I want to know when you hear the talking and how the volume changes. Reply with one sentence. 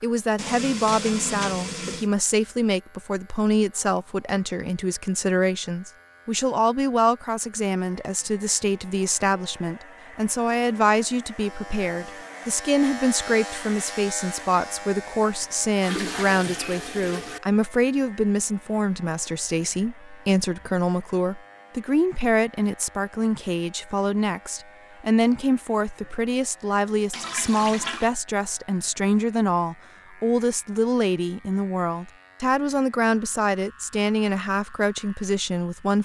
The talking can be heard from 0.0 to 36.0 s, at a steady volume.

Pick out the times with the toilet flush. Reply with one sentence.
You can hear the toilet flush from 0.3 to 2.1 s, from 15.4 to 17.4 s and from 27.1 to 28.1 s.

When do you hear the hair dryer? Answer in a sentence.
You can't hear the hair dryer here.